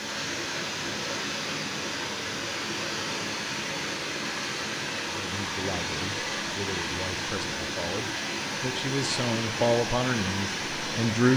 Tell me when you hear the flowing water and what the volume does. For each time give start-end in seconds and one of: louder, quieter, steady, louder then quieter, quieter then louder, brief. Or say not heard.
0.0-11.3 steady.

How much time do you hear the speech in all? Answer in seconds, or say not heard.
6 s.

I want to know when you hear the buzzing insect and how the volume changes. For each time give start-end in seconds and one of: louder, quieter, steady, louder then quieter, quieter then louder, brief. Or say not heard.
not heard.